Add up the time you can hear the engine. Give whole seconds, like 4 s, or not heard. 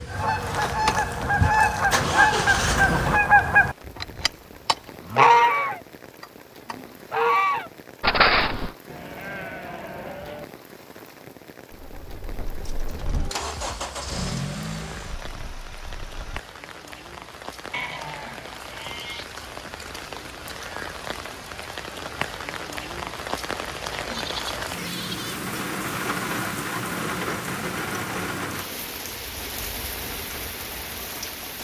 8 s.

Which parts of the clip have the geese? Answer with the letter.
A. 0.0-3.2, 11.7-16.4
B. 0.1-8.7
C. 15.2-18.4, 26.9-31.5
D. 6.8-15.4
B.